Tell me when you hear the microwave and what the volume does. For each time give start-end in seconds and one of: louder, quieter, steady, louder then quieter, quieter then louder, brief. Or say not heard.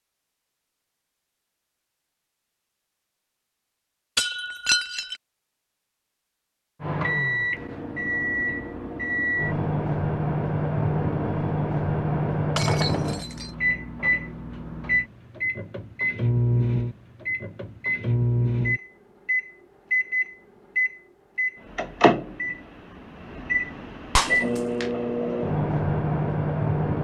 6.8-26.9 steady.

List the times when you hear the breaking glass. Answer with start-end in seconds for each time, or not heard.
4.2-5.2, 12.6-13.6, 24.1-24.9.